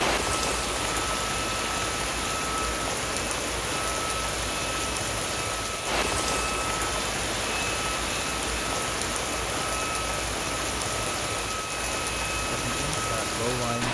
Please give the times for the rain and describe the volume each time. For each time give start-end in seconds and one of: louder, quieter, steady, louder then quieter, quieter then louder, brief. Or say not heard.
0.0-13.8 steady.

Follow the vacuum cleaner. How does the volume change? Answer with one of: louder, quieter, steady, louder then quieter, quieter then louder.
steady.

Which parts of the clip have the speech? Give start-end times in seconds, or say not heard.
12.4-13.8.